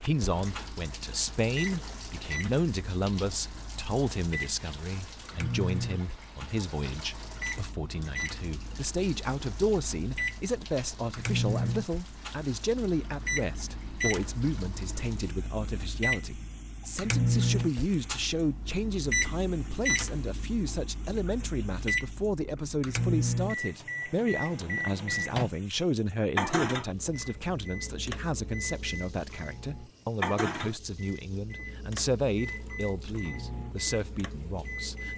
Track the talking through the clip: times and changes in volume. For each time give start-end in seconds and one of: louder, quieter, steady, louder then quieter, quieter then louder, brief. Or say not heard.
0.0-35.1 steady.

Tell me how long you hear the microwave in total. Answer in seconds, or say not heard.
35 s.